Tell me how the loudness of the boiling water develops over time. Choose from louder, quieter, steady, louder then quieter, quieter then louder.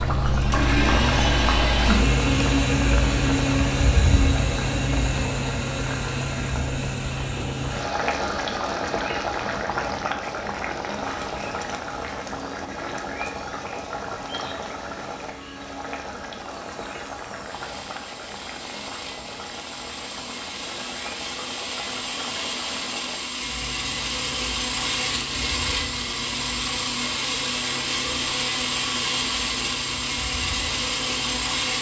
quieter.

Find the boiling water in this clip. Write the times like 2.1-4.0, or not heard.
0.0-31.7.